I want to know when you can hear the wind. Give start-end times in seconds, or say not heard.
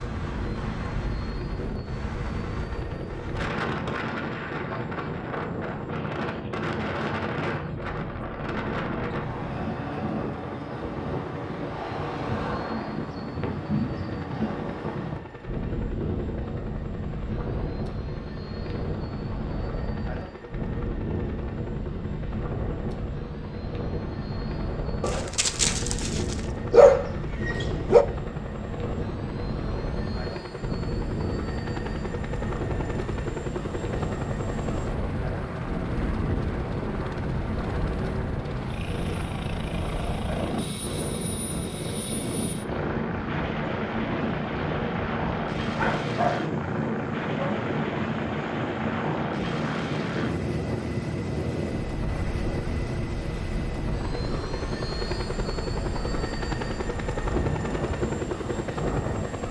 0.0-59.4.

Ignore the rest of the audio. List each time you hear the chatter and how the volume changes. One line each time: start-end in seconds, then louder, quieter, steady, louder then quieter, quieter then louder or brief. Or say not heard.
not heard.